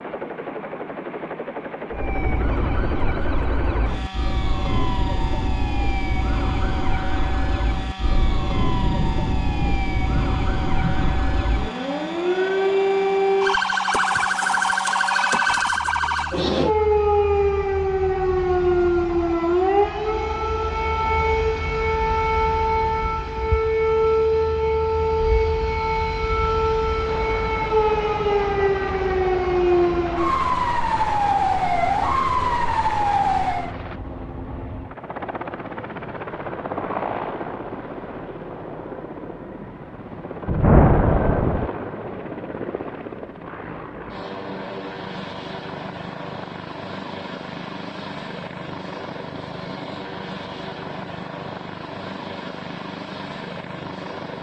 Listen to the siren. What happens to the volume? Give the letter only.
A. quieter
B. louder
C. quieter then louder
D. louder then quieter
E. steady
B.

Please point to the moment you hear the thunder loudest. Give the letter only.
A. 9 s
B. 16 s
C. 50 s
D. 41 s
D.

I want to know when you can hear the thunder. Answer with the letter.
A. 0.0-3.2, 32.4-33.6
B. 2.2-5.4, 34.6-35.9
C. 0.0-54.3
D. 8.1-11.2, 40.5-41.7
D.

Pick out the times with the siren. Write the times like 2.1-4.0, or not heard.
1.9-33.8.